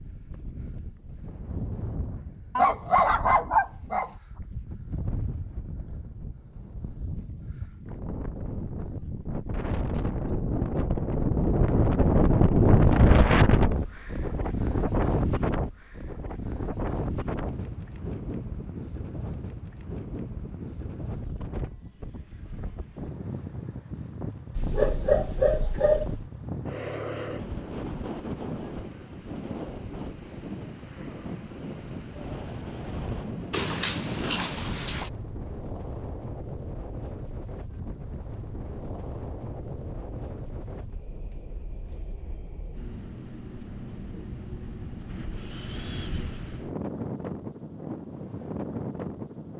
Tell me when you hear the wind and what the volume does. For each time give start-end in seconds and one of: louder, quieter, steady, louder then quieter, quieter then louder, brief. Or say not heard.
0.0-49.5 louder then quieter.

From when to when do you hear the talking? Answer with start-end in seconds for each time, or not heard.
not heard.